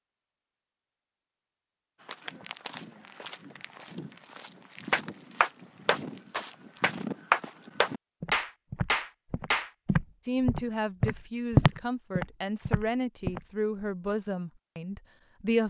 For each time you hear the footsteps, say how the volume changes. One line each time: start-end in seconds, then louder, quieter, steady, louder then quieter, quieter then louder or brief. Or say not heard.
2.0-13.4 louder.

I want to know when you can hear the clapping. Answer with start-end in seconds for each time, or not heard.
4.9-9.7.